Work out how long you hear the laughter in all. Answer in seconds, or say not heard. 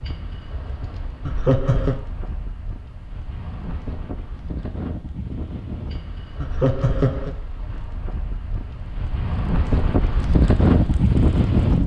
2 s.